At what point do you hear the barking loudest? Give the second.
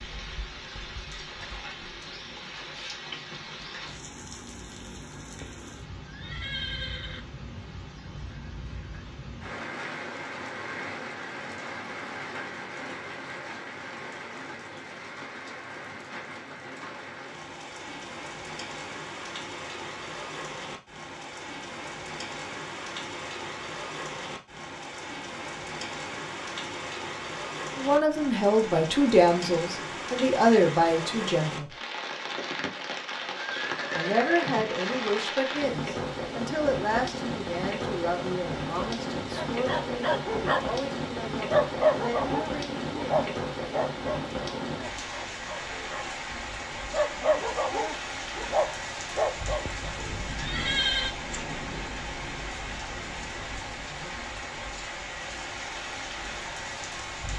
42 s.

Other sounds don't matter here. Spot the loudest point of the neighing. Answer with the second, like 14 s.
51 s.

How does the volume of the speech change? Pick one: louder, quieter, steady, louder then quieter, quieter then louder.
quieter.